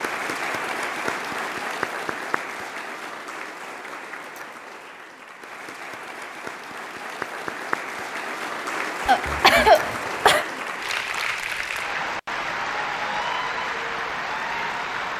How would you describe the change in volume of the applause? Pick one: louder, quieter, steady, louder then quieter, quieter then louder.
quieter then louder.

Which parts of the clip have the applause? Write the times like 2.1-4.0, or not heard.
0.0-15.1.